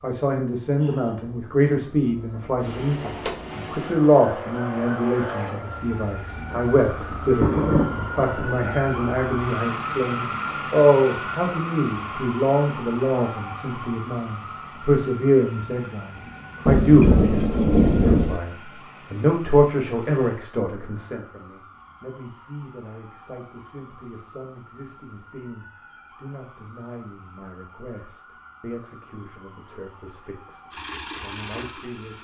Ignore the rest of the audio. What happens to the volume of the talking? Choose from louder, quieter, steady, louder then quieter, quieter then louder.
quieter.